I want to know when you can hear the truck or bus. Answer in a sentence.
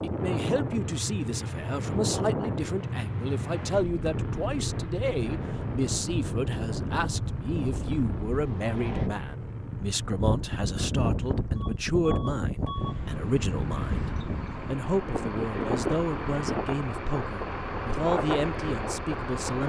The truck or bus can be heard from 0.0 to 19.6 s.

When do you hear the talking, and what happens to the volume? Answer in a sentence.
The talking can be heard from 0.0 to 19.6 s, at a steady volume.